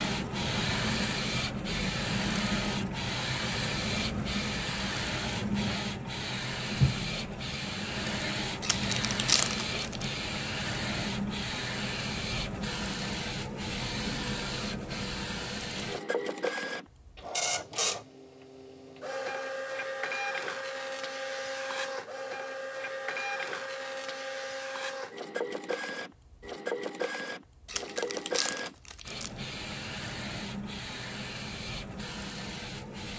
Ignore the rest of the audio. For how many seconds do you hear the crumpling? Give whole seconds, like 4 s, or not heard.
3 s.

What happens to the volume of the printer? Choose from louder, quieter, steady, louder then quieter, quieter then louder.
quieter.